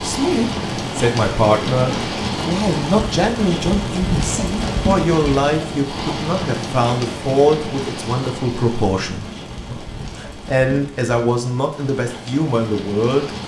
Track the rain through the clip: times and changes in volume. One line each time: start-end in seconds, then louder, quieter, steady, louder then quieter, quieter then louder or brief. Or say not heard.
0.0-13.4 quieter.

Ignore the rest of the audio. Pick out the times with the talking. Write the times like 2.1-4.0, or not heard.
0.0-13.3.